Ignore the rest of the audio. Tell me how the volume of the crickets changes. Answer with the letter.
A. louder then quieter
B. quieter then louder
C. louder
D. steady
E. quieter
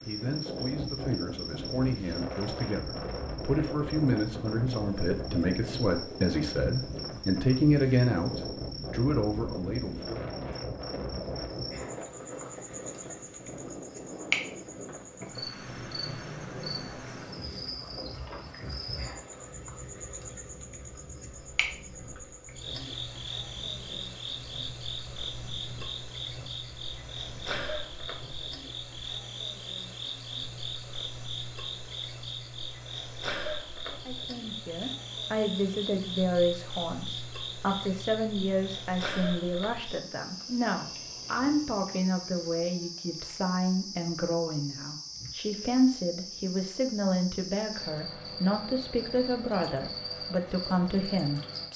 D.